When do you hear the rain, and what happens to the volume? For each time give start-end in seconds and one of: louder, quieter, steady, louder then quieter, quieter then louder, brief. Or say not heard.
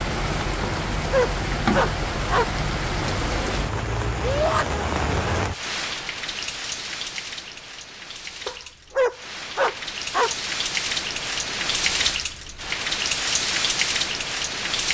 0.0-14.8 quieter then louder.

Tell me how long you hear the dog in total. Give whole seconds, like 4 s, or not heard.
4 s.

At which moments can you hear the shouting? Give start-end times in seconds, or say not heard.
4.2-4.7.